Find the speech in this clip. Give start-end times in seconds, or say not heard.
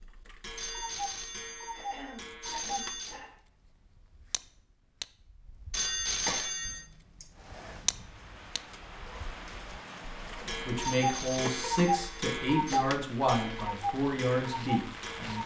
10.7-15.4.